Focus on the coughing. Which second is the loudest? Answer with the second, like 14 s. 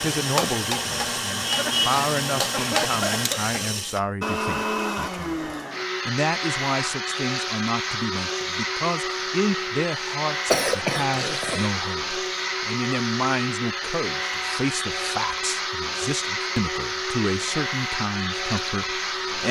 11 s.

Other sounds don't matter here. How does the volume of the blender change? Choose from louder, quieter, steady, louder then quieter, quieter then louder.
steady.